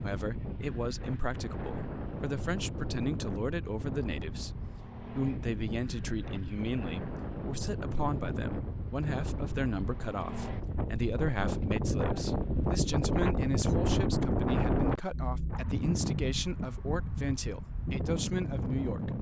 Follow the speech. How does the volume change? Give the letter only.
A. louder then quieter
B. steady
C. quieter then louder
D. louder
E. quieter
B.